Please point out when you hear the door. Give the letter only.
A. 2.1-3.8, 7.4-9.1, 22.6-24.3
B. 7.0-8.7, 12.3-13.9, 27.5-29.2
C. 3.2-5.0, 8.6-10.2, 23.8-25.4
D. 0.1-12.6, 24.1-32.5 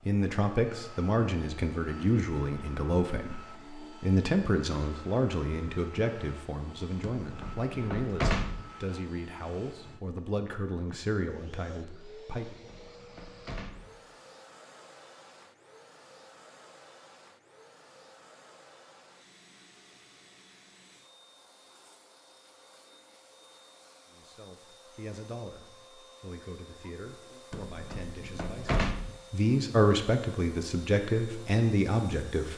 B.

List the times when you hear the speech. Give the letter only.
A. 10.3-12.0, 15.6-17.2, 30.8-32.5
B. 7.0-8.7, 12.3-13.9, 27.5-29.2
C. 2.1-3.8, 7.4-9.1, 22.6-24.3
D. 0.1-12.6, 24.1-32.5
D.